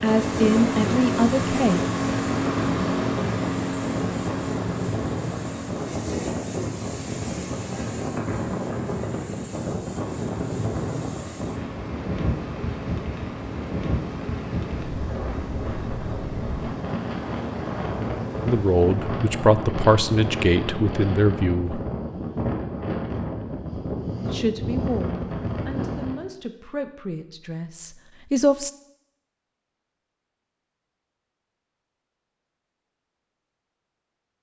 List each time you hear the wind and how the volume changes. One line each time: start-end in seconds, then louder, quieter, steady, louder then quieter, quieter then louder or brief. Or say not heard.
0.0-26.2 steady.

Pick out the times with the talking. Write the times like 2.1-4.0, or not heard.
0.0-1.8, 18.4-21.8, 24.3-28.7.